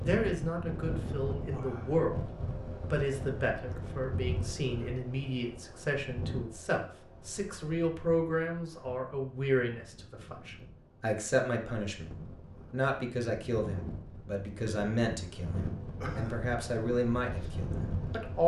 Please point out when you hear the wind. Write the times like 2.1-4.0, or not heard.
0.0-18.4.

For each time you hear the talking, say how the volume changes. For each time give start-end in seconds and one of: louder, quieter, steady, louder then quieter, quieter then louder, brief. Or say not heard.
0.0-2.2 brief
2.9-18.4 steady.